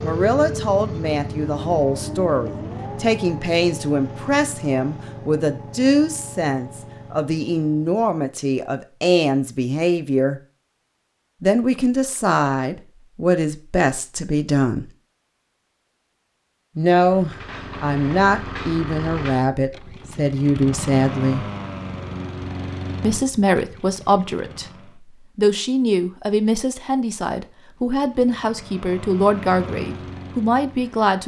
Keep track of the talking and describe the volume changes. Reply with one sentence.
The loudness of the talking stays about the same.